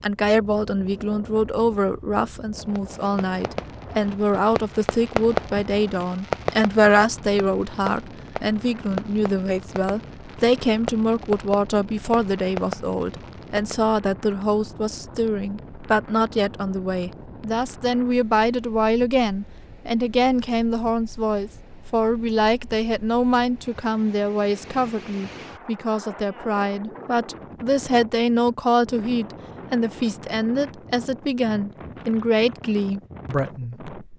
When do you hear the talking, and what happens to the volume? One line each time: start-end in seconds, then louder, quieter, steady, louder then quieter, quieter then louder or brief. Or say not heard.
0.0-33.9 steady.